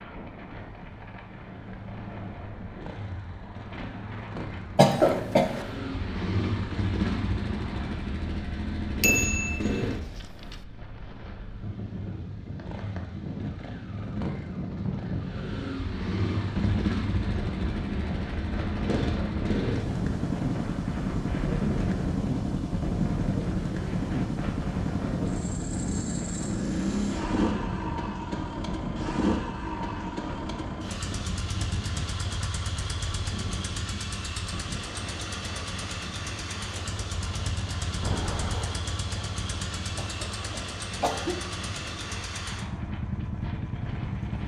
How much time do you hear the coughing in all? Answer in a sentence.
You can hear the coughing for 2 seconds altogether.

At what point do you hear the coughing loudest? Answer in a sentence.
The loudest moment of the coughing is at 5 seconds.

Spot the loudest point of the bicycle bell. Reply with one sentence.
The loudest moment of the bicycle bell is at 9 seconds.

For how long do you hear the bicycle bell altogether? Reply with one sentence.
The bicycle bell can be heard for 2 seconds in total.